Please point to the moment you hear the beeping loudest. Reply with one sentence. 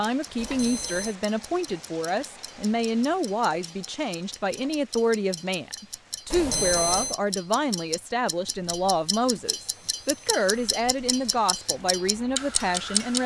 The loudest moment of the beeping is at 7 seconds.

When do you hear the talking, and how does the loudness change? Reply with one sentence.
You can hear the talking from 0.0 to 13.2 s, at a steady volume.